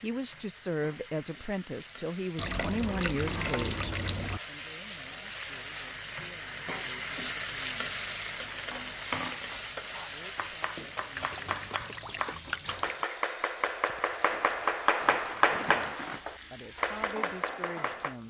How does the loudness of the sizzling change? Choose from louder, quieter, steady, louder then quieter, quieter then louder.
louder then quieter.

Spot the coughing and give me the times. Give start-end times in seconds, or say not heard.
not heard.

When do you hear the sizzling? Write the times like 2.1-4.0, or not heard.
0.0-18.2.